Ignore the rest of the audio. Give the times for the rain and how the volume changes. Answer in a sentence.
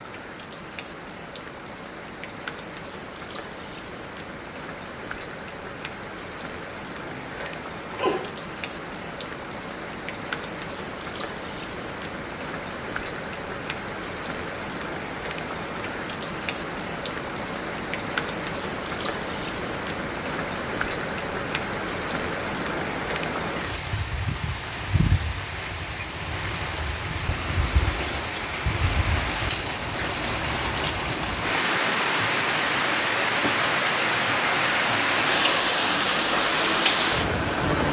You can hear the rain from 0.0 to 37.8 s, getting louder.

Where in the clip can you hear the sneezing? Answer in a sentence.
You can hear the sneezing from 7.0 to 8.2 s.